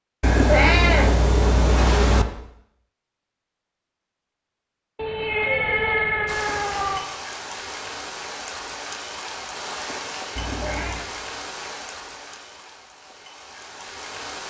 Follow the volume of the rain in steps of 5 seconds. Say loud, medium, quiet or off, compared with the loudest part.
off, loud, loud.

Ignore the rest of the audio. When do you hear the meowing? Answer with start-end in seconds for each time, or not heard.
0.2-2.2, 5.0-7.0, 10.3-11.1.